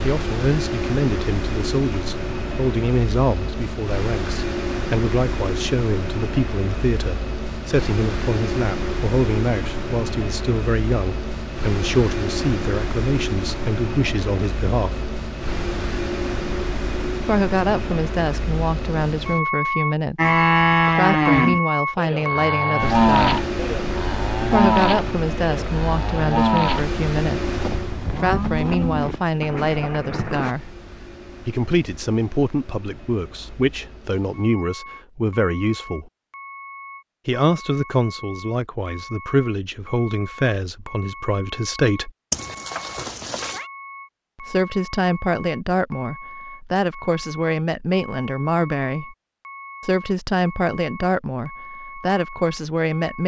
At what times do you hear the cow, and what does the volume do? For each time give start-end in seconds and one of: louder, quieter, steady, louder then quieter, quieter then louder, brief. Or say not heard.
20.1-30.6 quieter.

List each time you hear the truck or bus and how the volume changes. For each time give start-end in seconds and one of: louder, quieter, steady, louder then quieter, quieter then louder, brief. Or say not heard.
0.0-53.2 quieter.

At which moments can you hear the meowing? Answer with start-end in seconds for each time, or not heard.
42.3-43.7.